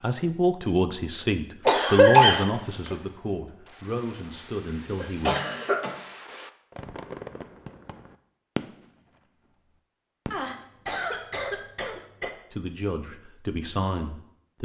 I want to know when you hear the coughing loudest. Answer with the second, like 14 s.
2 s.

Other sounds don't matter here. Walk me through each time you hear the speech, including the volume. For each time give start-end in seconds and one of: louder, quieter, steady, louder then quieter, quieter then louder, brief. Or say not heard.
0.0-5.3 quieter
12.5-14.6 brief.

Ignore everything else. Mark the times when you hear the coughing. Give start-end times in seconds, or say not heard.
1.6-3.0, 5.0-6.0, 10.3-12.3.